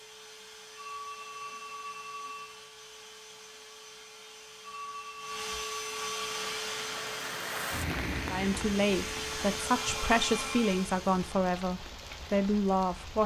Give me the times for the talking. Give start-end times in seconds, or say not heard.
8.2-13.2.